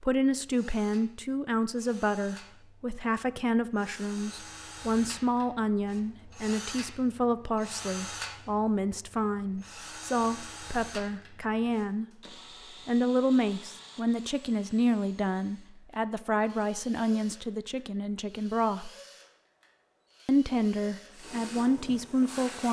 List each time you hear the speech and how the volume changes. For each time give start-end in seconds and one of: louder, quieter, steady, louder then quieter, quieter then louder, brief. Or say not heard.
0.0-12.1 steady
12.8-18.9 quieter
20.2-22.6 brief.